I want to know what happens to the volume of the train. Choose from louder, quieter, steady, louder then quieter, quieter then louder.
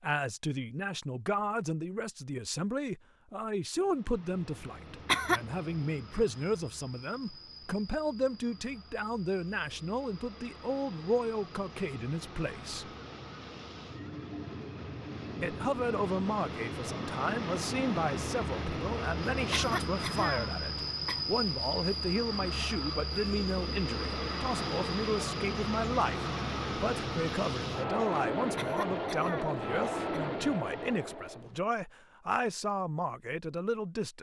louder.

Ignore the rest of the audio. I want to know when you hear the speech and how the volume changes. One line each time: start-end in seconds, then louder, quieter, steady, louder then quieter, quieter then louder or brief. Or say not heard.
0.0-12.9 steady
15.4-34.1 steady.